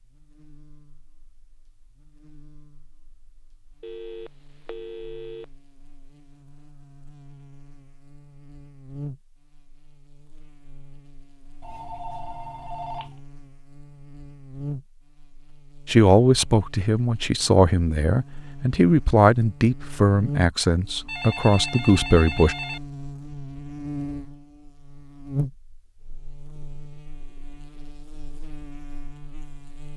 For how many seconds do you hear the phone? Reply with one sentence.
You can hear the phone for 5 seconds altogether.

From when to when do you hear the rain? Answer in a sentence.
The rain can't be heard in this clip.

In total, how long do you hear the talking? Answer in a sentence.
The talking can be heard for 7 seconds in total.